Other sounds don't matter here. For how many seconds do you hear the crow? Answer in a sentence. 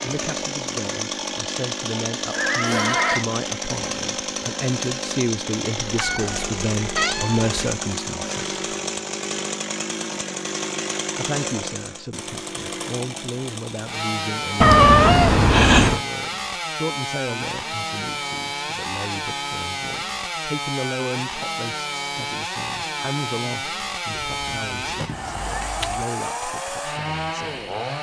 You can't hear the crow here.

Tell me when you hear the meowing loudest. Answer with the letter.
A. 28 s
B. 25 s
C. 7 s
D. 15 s
D.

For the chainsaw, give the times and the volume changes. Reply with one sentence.
The chainsaw can be heard from 0.0 to 27.9 s, at a steady volume.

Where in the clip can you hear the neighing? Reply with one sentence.
The neighing can be heard from 2.3 to 3.2 s.